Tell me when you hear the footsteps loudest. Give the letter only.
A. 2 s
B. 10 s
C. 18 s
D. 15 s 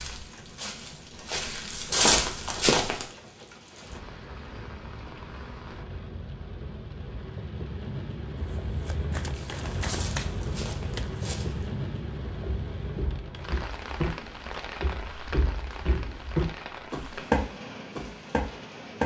A.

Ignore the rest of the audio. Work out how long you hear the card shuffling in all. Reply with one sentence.
The card shuffling can be heard for 3 seconds in total.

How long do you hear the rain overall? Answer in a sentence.
You can hear the rain for 19 seconds altogether.